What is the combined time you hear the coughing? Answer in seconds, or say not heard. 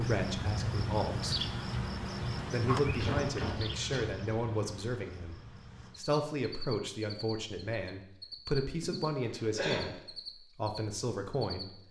2 s.